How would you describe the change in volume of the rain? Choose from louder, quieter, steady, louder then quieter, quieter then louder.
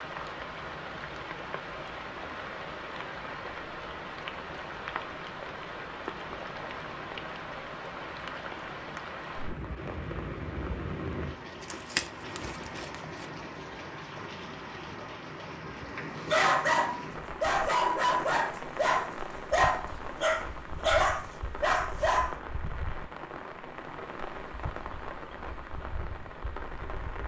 steady.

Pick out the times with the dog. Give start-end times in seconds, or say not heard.
16.2-22.4.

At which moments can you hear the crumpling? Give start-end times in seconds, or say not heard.
11.6-13.3.